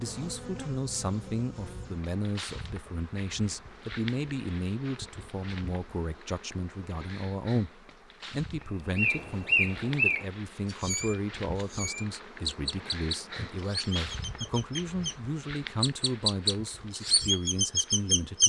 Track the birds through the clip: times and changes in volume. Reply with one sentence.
The birds can be heard from 8.9 to 15.2 s, getting quieter; and briefly from 15.8 to 18.4 s.